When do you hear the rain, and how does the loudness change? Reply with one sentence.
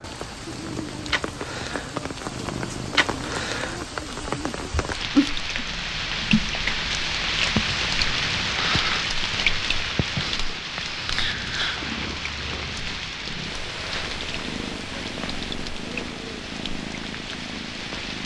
You can hear the rain from 0.0 to 18.2 s, getting louder then quieter.